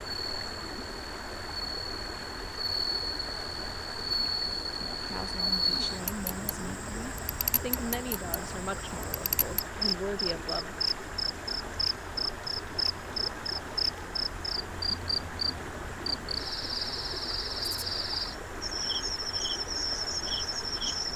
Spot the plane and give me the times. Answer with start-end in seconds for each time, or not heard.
not heard.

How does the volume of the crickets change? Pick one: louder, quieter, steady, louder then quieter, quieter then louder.
steady.